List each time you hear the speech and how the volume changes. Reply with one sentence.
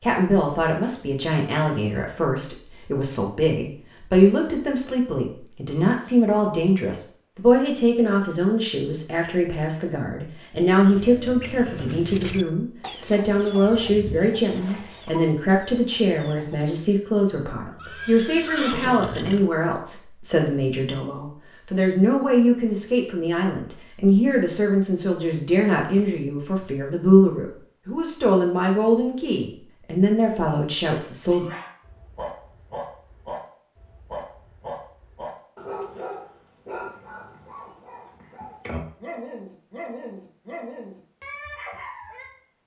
The speech can be heard from 0.0 to 31.4 s, at a steady volume.